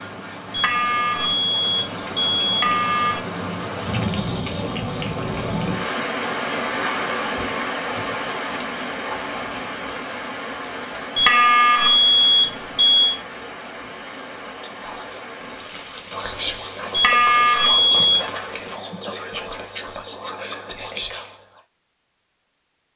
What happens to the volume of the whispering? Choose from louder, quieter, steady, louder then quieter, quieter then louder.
louder.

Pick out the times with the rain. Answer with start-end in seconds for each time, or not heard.
0.0-18.8.